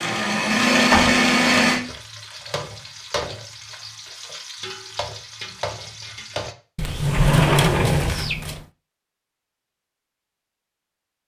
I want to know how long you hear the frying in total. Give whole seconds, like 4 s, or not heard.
5 s.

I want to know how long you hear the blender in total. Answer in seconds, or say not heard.
2 s.